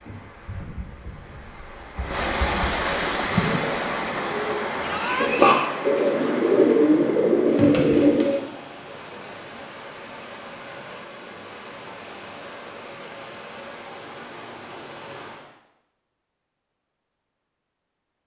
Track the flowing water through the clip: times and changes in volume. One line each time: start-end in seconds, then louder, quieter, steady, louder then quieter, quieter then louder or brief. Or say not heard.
0.0-15.5 quieter.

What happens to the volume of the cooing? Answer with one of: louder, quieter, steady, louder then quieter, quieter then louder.
louder.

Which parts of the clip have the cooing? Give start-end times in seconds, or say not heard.
3.4-8.4.